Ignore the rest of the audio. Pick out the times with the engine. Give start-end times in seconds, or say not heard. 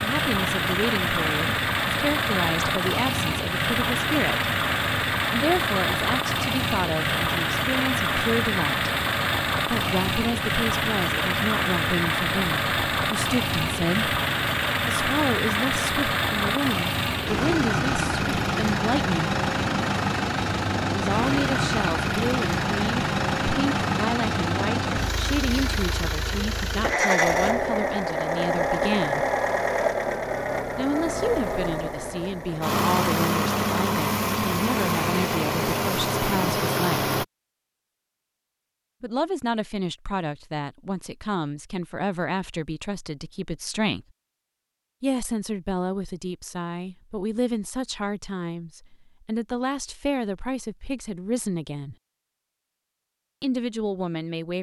0.0-37.2.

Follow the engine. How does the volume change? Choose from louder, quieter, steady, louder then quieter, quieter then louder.
steady.